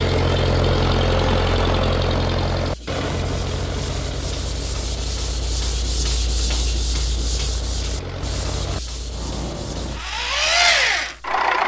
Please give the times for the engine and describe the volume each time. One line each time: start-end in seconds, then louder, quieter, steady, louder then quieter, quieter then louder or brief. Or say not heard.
0.0-11.6 quieter then louder.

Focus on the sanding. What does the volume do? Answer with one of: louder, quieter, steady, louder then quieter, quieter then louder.
louder then quieter.